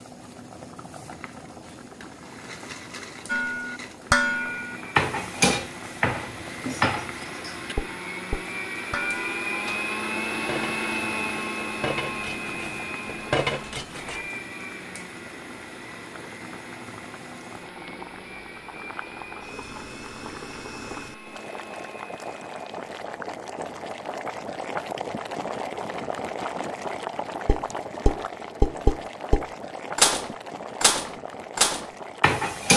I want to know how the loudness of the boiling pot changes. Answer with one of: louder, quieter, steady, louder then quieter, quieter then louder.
louder.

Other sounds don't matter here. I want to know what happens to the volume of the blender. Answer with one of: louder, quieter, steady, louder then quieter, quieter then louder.
louder then quieter.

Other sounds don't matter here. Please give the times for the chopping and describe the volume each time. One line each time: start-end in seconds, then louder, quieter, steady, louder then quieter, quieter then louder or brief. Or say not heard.
not heard.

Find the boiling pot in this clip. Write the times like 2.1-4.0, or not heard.
0.0-32.7.